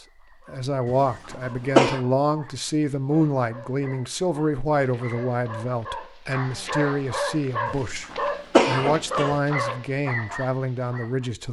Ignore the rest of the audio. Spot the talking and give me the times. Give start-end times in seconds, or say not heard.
0.5-11.4.